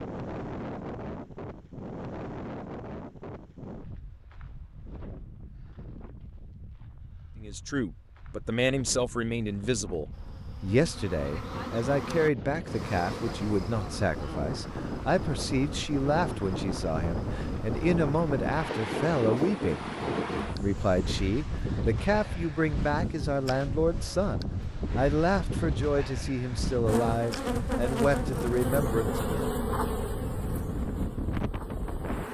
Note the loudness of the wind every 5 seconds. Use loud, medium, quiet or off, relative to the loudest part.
medium, quiet, medium, loud, loud, loud, loud.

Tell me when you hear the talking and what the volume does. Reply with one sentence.
You can hear the talking from 7.4 to 29.4 s, at a steady volume.